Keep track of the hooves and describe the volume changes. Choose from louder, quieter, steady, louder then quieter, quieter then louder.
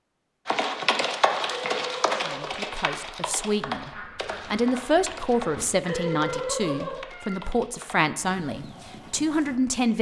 quieter.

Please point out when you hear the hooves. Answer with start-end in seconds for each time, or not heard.
0.5-9.6.